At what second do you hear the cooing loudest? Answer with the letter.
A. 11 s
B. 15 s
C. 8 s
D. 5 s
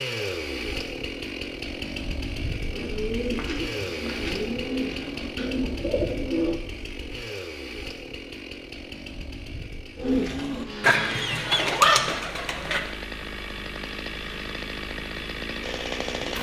A.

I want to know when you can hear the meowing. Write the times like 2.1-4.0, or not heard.
11.6-12.1.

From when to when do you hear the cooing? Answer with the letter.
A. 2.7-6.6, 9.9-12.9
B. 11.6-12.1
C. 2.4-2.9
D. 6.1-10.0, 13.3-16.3
A.